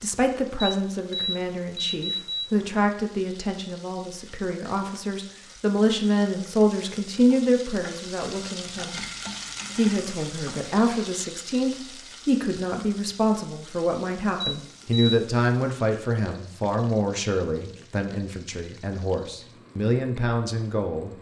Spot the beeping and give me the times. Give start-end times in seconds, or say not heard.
0.6-2.5, 14.4-15.1.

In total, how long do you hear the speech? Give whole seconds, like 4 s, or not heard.
20 s.